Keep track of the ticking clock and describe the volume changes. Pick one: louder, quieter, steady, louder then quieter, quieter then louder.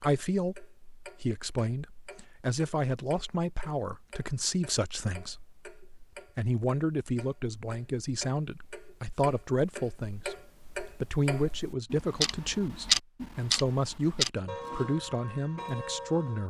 louder.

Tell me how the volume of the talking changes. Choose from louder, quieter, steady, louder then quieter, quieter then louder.
steady.